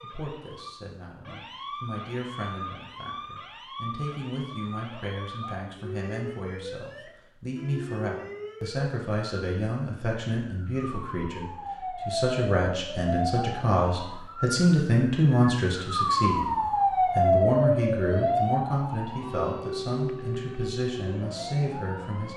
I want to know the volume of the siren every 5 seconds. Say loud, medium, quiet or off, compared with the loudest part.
quiet, quiet, medium, loud, medium.